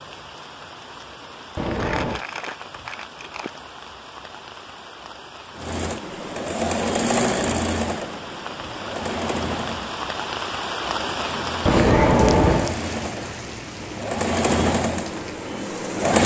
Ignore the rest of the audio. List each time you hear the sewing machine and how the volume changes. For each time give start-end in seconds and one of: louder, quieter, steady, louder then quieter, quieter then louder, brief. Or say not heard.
5.5-16.2 quieter then louder.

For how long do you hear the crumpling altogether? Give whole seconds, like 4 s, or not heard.
2 s.